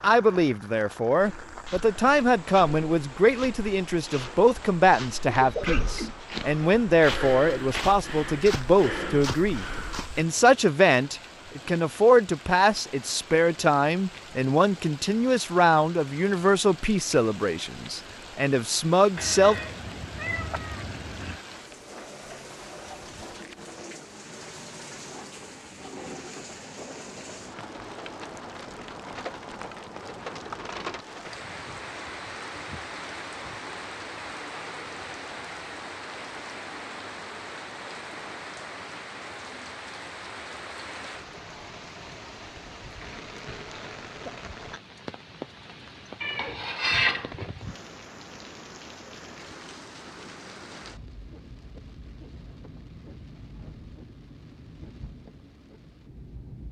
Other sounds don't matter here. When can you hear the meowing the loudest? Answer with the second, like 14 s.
47 s.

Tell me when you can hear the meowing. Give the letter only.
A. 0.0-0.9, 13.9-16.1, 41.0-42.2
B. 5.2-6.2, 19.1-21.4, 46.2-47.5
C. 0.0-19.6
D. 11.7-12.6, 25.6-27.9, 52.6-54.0
B.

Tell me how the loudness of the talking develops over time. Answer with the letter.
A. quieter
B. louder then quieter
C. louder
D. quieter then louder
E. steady
E.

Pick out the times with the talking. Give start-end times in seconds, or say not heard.
0.0-19.6.